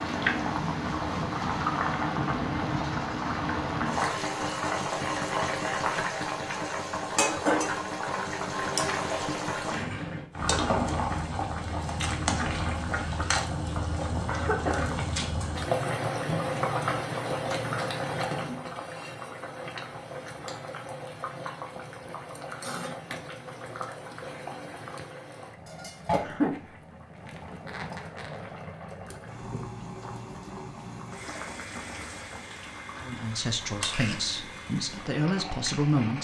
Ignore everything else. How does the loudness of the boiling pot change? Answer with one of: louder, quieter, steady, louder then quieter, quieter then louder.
quieter.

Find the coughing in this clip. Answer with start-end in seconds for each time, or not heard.
14.2-14.9, 26.1-26.6.